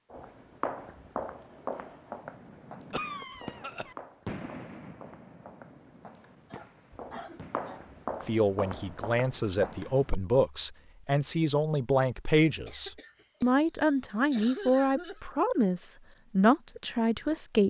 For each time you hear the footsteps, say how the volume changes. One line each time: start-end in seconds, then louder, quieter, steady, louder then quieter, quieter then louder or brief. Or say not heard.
0.1-10.2 quieter then louder.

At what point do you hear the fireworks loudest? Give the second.
4 s.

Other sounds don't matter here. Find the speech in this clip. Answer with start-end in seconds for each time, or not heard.
8.2-17.6.